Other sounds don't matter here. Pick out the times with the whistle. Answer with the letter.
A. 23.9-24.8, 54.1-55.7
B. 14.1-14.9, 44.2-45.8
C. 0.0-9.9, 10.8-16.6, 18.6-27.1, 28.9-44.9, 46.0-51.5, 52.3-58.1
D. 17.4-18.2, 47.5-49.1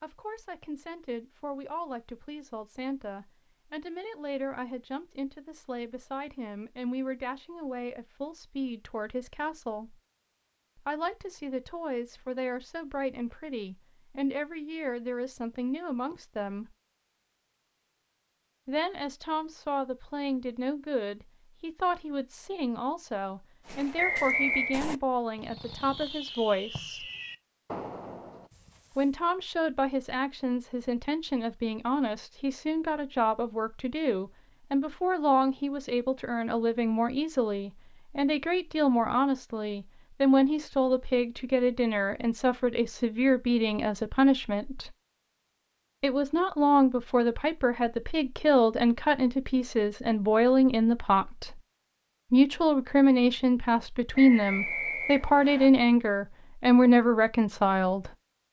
A.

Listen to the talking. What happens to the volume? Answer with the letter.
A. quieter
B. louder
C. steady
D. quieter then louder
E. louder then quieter
B.